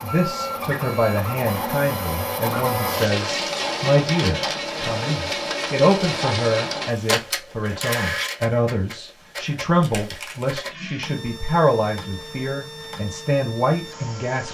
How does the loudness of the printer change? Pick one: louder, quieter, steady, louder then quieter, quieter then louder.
quieter.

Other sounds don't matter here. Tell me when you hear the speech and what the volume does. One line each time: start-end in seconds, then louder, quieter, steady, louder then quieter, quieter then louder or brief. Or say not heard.
0.0-14.4 steady.